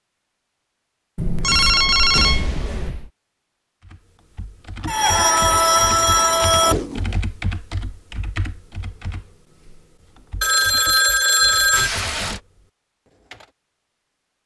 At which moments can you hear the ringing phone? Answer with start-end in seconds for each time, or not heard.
1.1-3.1, 4.8-6.8, 10.4-11.9.